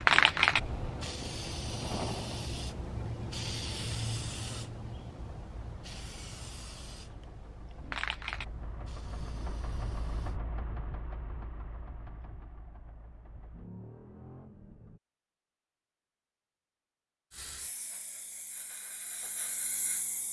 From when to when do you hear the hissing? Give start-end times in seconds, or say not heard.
0.0-10.3, 17.3-20.2.